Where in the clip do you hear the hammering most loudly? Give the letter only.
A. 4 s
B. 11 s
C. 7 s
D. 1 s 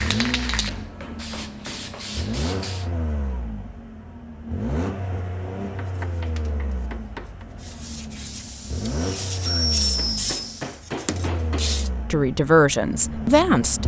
B.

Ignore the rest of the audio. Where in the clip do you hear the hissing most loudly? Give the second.
10 s.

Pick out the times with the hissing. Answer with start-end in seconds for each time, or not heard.
0.0-2.9, 8.2-10.8.